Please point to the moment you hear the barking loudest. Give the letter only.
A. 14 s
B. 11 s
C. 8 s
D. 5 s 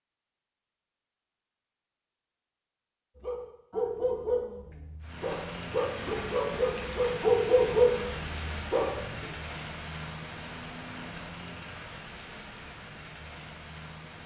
C.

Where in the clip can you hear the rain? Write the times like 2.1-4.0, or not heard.
5.0-14.2.